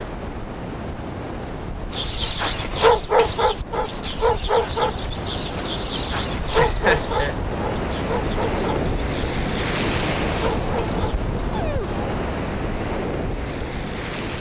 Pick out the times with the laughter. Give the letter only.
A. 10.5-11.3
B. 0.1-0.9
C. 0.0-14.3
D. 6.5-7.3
D.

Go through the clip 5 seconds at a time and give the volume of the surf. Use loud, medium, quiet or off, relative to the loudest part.
medium, loud, loud.